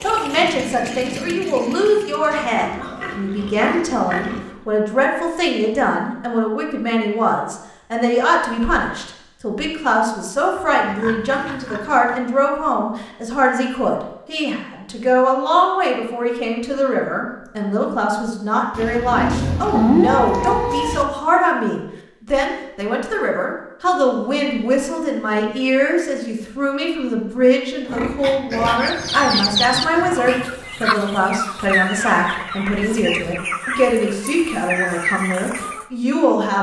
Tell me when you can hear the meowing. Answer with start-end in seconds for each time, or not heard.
19.3-21.1.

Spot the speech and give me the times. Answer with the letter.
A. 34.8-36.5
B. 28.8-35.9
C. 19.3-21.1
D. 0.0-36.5
D.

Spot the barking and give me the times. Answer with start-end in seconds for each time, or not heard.
not heard.